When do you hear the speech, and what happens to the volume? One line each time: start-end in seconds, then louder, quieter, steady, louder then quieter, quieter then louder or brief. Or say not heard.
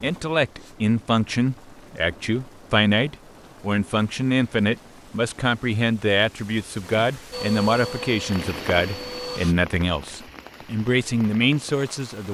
0.0-12.3 steady.